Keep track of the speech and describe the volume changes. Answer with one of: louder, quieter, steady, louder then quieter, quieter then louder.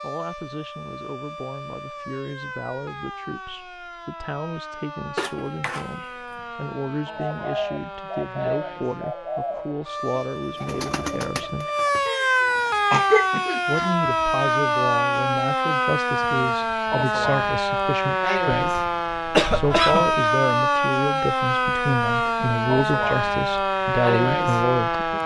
louder.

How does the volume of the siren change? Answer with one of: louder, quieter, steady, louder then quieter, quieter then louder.
louder.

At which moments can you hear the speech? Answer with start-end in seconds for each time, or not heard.
0.0-11.7, 13.7-18.8, 19.5-25.1.